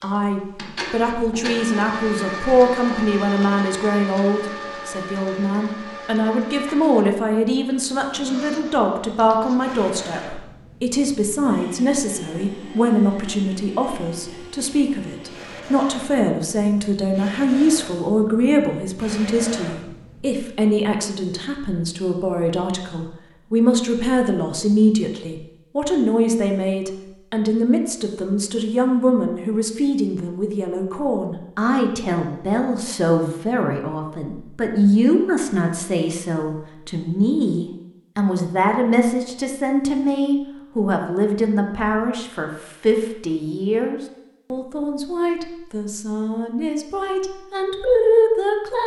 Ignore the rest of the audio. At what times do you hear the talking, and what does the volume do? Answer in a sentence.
The talking can be heard from 0.0 to 48.8 s, at a steady volume.